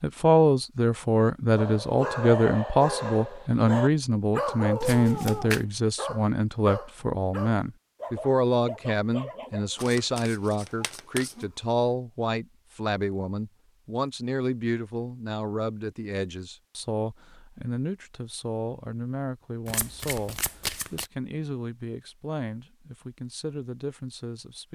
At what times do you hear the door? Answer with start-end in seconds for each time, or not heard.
not heard.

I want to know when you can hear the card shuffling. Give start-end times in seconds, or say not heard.
4.8-5.6, 9.8-11.3, 19.6-21.1.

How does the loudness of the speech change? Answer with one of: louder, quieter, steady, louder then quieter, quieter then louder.
quieter.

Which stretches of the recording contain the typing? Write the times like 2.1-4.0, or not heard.
not heard.